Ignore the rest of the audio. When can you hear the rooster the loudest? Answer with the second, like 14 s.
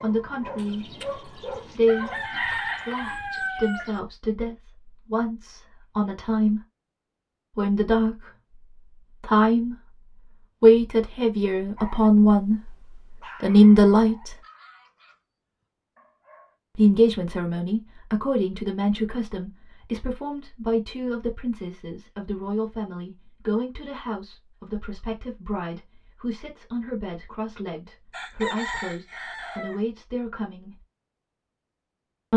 3 s.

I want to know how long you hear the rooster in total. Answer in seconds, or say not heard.
5 s.